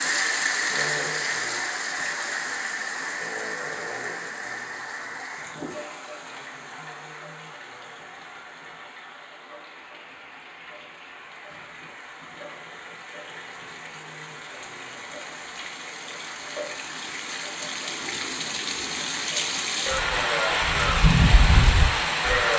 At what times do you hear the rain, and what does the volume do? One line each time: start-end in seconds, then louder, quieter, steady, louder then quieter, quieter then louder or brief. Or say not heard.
0.0-22.5 quieter then louder.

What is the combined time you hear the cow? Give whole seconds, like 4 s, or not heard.
3 s.